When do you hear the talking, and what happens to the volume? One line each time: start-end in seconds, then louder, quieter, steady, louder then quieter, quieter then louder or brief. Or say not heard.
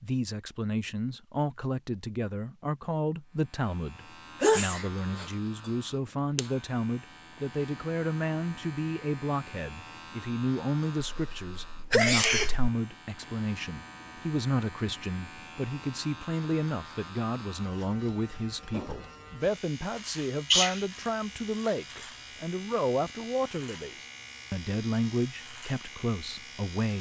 0.0-26.9 steady.